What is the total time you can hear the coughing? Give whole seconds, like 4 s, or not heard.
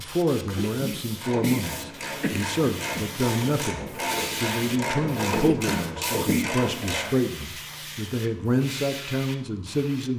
4 s.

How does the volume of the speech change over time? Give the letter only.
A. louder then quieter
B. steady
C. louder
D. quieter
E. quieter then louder
B.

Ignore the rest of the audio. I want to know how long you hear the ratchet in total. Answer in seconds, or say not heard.
6 s.